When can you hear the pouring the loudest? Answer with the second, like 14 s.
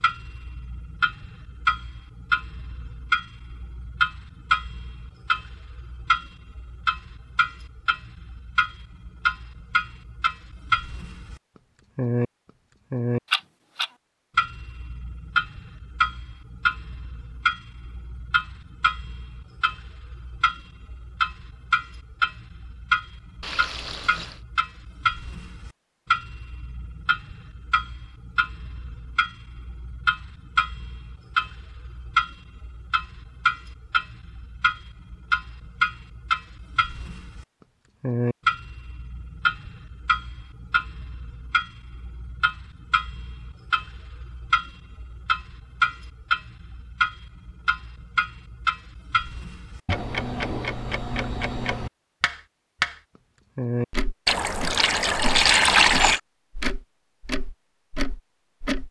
56 s.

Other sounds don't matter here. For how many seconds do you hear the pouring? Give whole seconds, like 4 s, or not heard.
3 s.